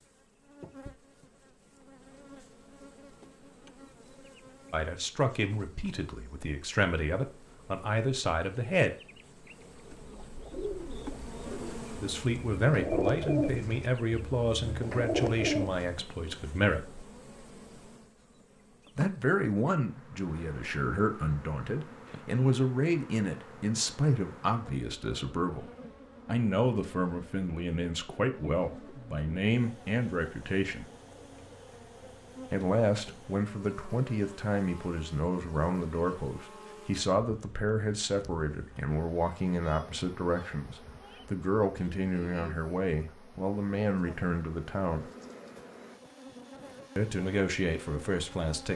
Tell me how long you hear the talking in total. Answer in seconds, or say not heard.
35 s.